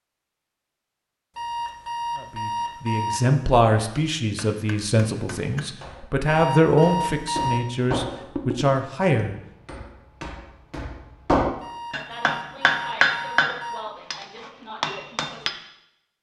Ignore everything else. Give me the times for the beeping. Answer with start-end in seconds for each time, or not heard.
1.4-3.2, 6.2-7.6, 11.6-13.8.